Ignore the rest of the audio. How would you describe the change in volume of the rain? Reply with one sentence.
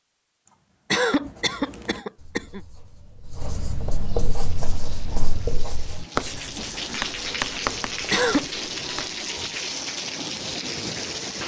The volume of the rain goes up.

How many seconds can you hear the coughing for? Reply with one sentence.
The coughing can be heard for 2 seconds in total.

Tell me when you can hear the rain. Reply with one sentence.
You can hear the rain from 4.3 to 11.4 s.